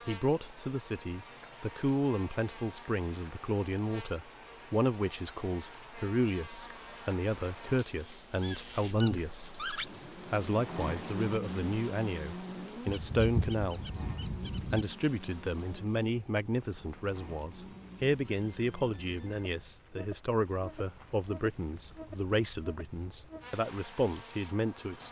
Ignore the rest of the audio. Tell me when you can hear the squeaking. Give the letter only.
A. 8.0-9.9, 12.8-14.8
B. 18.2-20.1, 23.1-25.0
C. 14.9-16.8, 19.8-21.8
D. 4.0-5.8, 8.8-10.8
A.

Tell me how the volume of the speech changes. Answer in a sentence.
The loudness of the speech stays about the same.